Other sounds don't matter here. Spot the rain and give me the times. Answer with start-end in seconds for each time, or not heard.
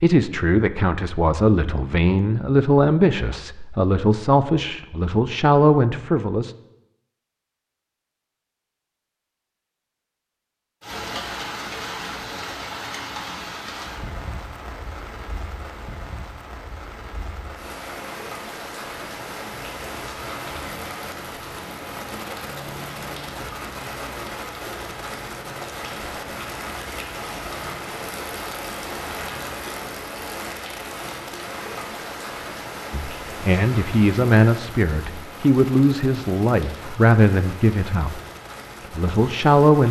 10.8-39.8.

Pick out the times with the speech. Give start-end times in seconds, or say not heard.
0.0-6.5, 32.9-38.2, 38.9-39.8.